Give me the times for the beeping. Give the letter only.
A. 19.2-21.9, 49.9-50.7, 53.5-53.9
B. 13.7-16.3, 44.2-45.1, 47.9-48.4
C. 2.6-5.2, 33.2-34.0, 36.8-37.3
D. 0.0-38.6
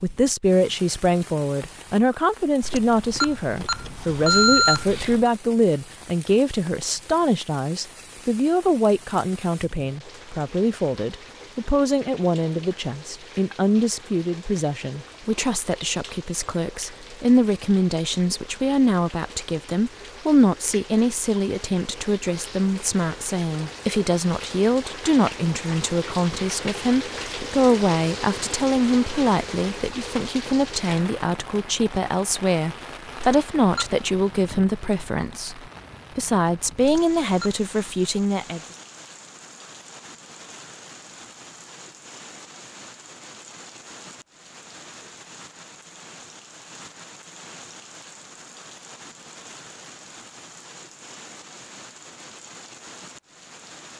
C.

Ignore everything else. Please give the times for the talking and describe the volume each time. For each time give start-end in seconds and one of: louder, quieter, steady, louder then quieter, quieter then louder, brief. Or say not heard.
0.0-38.6 steady.